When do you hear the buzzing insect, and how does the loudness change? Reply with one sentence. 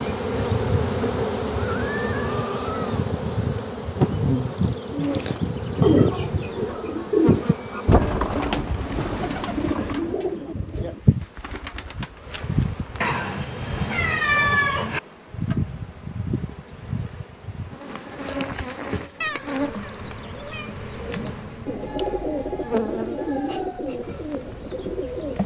The buzzing insect can be heard from 0.0 to 25.4 s, getting quieter.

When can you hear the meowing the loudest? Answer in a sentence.
The loudest moment of the meowing is at 14 seconds.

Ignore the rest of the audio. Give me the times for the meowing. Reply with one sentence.
You can hear the meowing from 1.6 to 3.0 s, from 13.0 to 15.0 s and from 19.2 to 21.2 s.